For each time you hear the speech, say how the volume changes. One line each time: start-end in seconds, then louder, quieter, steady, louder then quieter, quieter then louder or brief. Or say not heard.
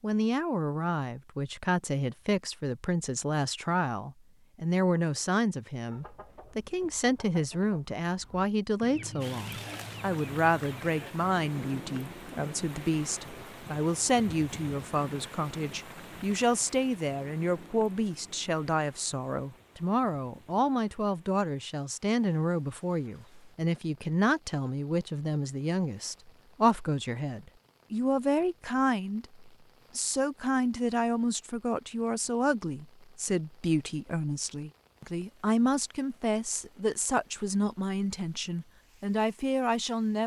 0.0-40.2 steady.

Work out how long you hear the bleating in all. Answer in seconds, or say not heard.
not heard.